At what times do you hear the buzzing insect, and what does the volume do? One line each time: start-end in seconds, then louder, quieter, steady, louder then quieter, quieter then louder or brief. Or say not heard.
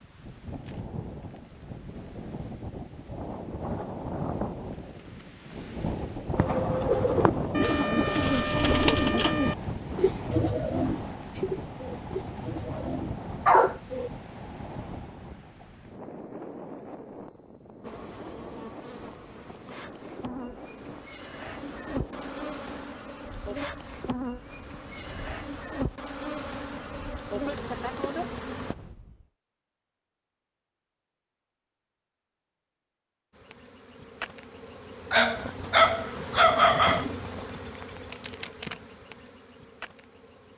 17.8-28.8 louder
33.3-40.5 louder then quieter.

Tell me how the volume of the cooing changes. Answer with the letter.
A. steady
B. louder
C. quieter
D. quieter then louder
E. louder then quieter
C.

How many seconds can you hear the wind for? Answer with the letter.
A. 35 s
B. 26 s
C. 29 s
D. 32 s
C.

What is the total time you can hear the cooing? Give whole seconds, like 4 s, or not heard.
8 s.